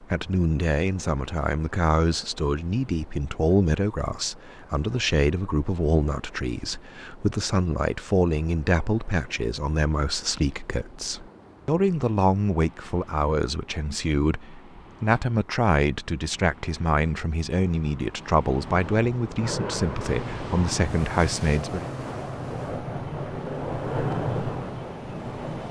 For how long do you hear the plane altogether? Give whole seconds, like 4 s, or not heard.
7 s.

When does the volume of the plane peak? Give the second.
24 s.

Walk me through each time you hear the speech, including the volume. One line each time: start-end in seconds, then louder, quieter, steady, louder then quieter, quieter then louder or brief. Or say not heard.
0.0-21.9 steady.